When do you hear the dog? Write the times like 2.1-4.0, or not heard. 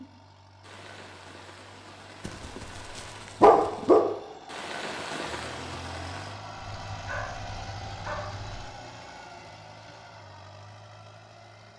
2.2-4.0, 6.8-8.6.